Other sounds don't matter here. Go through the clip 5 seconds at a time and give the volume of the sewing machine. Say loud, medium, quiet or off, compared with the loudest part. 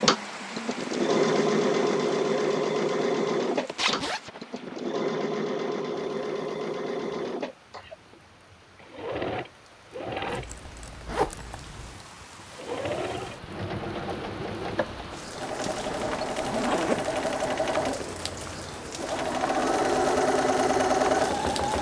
loud, medium, medium, medium, loud.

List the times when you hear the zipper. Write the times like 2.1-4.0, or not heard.
3.6-4.2, 10.2-12.0, 15.5-17.1.